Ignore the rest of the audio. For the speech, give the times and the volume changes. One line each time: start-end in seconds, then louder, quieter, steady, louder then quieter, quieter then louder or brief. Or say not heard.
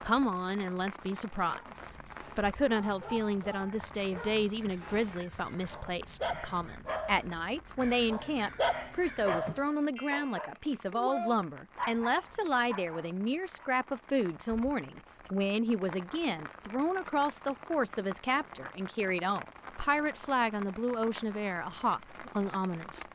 0.0-23.1 steady.